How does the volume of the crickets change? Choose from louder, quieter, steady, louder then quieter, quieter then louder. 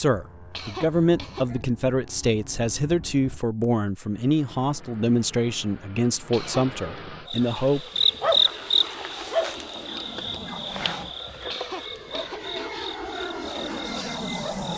quieter.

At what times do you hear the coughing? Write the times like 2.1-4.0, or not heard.
0.5-1.6, 6.3-7.0, 11.5-12.8.